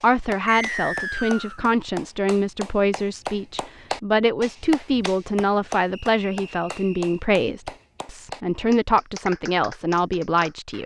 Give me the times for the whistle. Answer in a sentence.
The whistle can be heard from 0.5 to 1.6 s and from 5.9 to 7.2 s.